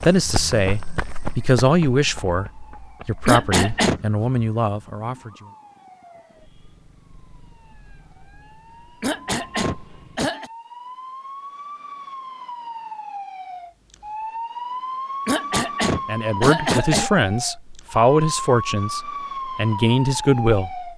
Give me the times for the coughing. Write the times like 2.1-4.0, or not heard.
3.2-4.0, 9.0-10.5, 15.2-17.1.